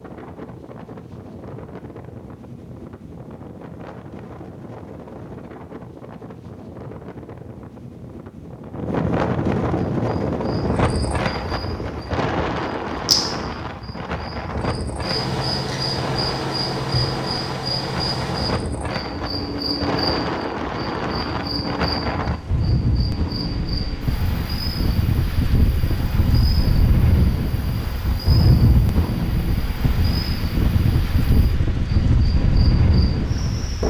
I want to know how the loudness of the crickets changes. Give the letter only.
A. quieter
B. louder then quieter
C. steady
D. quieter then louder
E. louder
A.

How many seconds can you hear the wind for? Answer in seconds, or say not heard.
34 s.